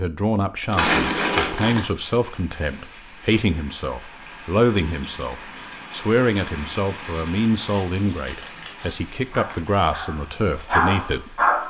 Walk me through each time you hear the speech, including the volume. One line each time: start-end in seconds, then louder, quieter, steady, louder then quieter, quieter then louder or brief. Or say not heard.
0.0-11.4 steady.